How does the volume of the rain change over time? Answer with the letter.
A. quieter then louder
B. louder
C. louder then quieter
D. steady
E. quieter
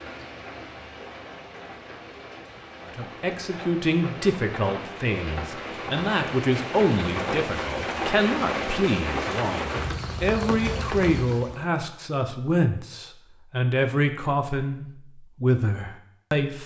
B.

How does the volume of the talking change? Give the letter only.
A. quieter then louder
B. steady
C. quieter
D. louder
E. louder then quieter
B.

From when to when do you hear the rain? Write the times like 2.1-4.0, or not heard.
0.0-11.7.